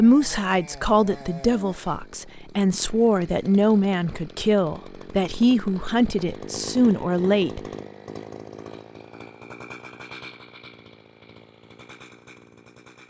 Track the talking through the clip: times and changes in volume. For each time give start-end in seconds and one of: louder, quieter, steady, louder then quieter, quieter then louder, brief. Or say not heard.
0.0-7.6 steady.